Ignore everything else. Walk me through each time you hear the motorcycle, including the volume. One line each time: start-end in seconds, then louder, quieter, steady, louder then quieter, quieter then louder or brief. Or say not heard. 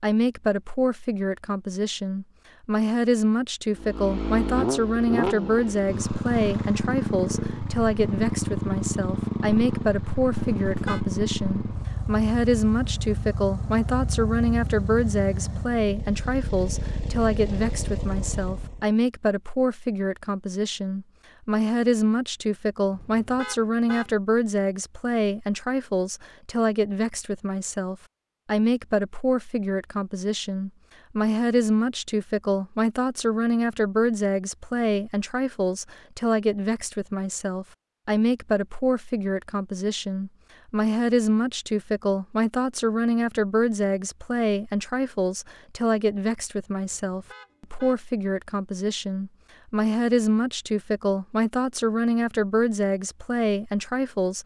3.8-18.9 quieter.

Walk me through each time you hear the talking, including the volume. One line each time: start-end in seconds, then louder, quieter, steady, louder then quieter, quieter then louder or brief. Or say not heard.
0.0-54.4 steady.